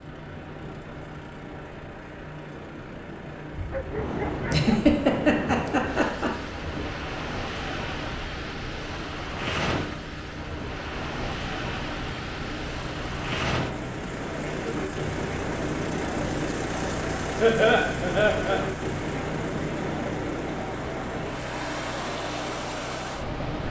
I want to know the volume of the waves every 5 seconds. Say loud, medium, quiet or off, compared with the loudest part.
medium, loud, loud, loud, loud.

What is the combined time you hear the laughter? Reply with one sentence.
You can hear the laughter for 3 seconds altogether.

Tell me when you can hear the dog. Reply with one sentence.
The dog can be heard from 3.5 to 4.9 s.